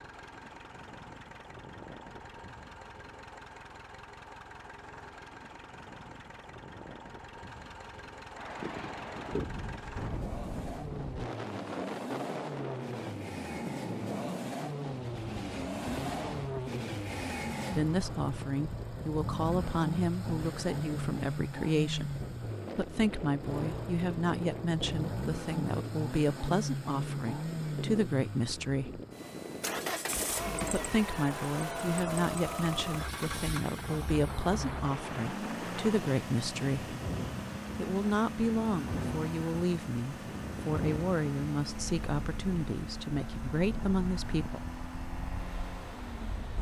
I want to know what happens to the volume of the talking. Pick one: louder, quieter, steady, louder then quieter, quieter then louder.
steady.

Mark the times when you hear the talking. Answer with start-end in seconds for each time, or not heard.
17.8-22.1, 22.8-29.0, 30.7-37.0, 37.8-44.6.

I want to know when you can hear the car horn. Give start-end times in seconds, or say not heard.
not heard.